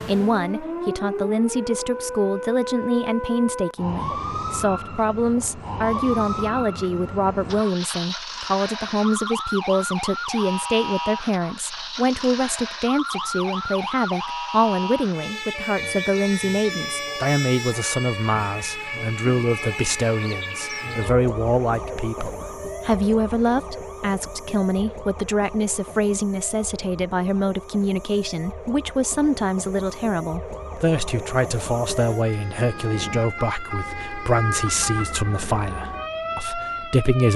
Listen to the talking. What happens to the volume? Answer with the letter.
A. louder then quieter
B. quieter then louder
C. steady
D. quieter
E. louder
C.